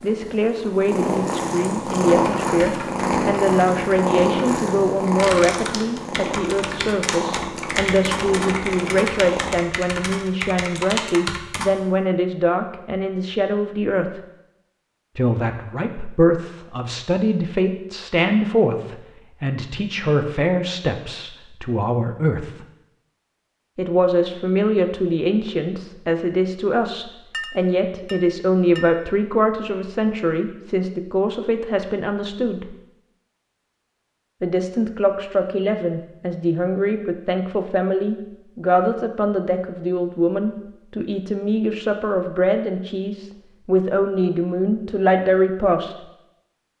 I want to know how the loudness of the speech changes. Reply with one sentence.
The volume of the speech stays about the same.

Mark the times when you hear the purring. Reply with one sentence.
The purring can be heard from 0.0 to 9.6 s.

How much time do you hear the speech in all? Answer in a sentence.
The speech can be heard for 42 seconds in total.